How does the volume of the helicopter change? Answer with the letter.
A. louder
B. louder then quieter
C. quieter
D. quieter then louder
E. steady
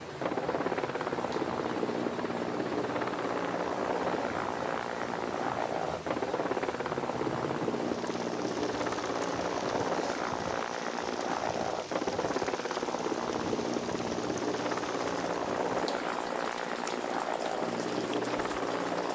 E.